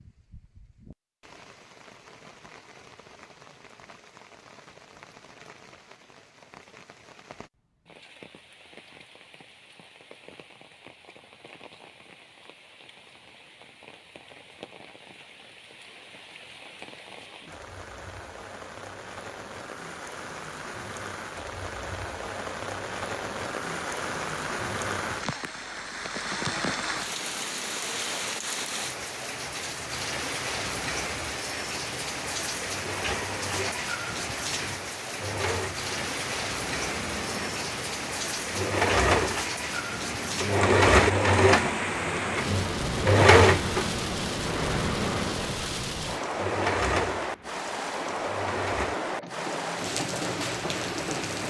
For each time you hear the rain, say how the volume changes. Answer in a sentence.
You can hear the rain from 0.0 to 51.4 s, getting louder.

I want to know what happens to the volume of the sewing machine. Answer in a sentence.
The volume of the sewing machine goes up, then down.